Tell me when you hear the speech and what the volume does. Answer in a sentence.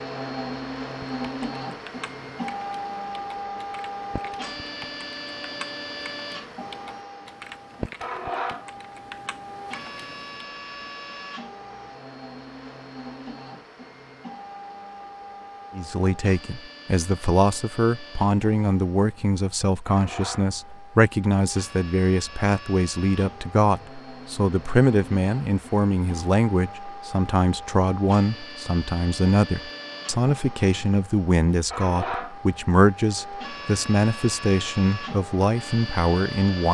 The speech can be heard from 15.8 to 36.6 s, at a steady volume.